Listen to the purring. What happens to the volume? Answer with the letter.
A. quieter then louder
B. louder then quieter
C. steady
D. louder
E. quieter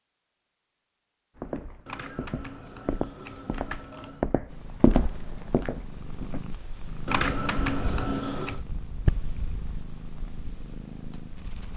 B.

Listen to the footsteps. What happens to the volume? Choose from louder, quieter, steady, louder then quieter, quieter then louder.
louder then quieter.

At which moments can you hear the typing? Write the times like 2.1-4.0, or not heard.
1.9-4.3, 7.0-8.6.